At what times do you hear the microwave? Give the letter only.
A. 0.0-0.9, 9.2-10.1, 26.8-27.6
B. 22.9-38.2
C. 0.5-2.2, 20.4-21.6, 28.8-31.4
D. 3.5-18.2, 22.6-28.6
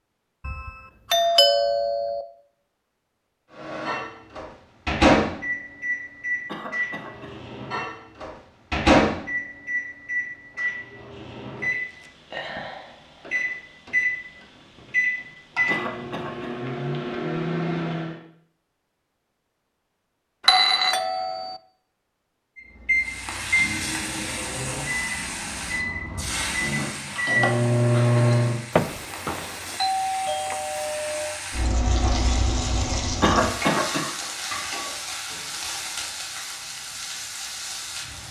D.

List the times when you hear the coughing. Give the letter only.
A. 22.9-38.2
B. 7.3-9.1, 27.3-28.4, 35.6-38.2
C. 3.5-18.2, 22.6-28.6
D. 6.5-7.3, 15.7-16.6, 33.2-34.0
D.